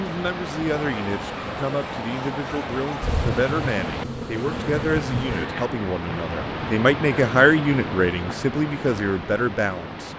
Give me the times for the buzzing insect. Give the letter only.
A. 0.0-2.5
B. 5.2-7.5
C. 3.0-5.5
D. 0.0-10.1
C.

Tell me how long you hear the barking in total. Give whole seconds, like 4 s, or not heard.
2 s.